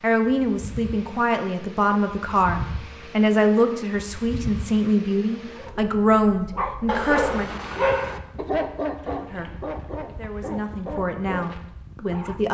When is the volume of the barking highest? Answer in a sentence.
The volume of the barking peaks at 8 seconds.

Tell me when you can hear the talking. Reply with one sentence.
The talking can be heard from 0.0 to 7.5 s and from 9.2 to 12.4 s.